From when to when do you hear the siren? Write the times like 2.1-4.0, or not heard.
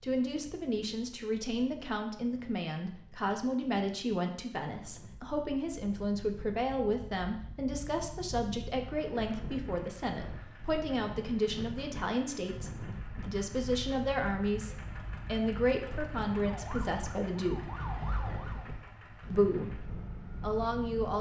16.3-18.8.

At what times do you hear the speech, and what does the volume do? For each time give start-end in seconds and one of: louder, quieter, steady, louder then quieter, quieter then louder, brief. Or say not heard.
0.0-17.6 steady
19.3-21.1 brief.